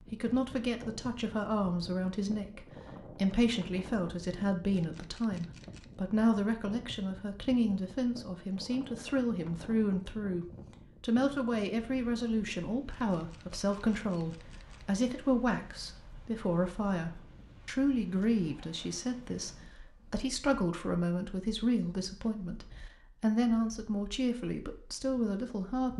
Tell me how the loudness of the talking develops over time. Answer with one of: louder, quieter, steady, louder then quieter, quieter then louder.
steady.